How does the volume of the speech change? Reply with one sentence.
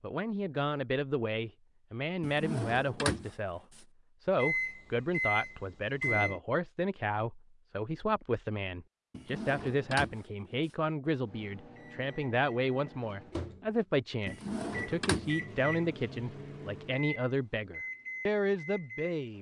The loudness of the speech stays about the same.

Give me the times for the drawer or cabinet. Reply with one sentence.
The drawer or cabinet can be heard from 2.2 to 3.8 s, from 9.1 to 10.8 s and from 14.2 to 15.3 s.